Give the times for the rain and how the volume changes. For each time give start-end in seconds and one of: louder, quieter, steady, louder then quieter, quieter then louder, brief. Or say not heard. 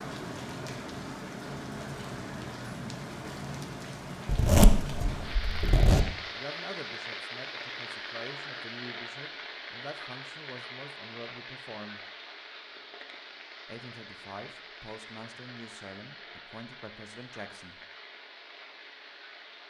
0.0-19.6 quieter.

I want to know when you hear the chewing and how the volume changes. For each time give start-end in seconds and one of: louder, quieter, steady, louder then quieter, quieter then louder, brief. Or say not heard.
not heard.